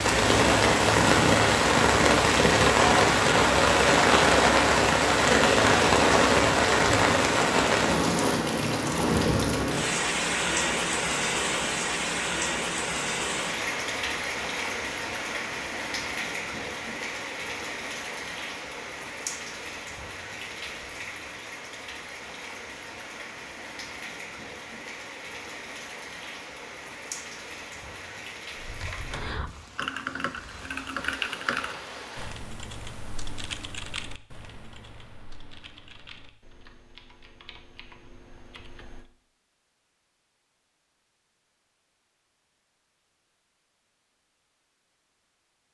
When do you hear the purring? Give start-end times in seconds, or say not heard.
not heard.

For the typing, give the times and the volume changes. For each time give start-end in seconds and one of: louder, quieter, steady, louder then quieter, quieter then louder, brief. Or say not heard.
28.6-39.0 quieter.